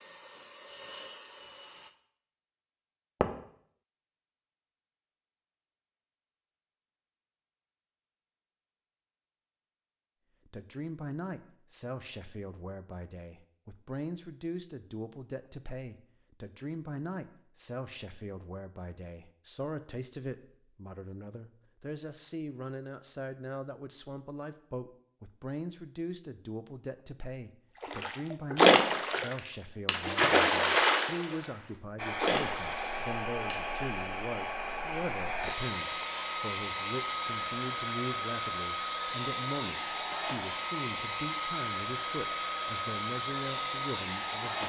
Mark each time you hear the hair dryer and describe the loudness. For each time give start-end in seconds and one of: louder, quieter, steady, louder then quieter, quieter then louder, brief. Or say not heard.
0.0-1.9 brief
31.9-44.6 steady.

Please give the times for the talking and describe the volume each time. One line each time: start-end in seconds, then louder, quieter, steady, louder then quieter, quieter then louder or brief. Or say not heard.
10.4-44.6 steady.